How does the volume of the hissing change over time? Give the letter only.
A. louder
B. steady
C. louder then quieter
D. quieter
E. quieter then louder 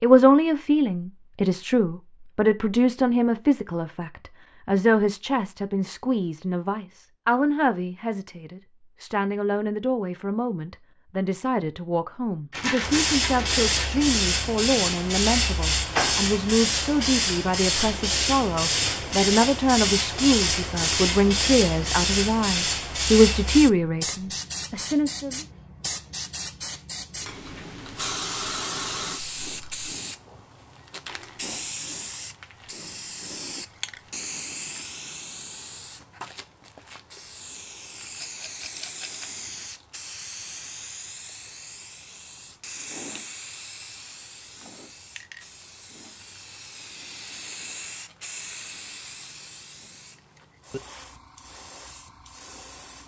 D.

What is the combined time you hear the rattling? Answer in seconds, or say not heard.
3 s.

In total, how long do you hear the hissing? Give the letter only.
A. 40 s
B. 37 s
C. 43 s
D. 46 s
A.